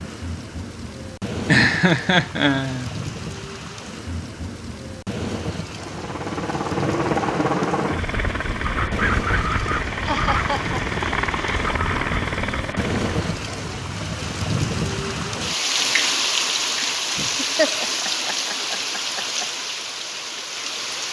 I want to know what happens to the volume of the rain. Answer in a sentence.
The volume of the rain goes up.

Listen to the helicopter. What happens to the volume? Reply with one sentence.
The loudness of the helicopter stays about the same.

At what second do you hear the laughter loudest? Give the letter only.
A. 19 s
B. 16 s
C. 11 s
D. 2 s
D.